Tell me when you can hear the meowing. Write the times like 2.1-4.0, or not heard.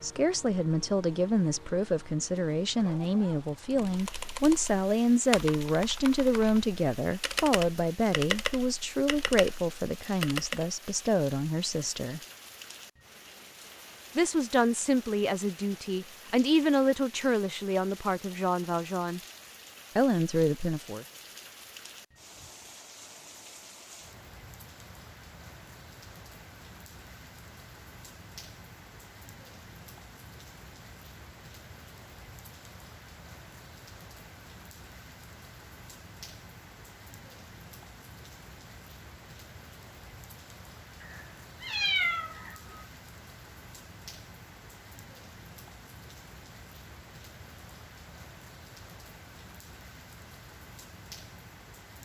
41.0-42.9.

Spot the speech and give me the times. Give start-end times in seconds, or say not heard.
0.0-12.2, 14.2-19.2, 19.9-21.1.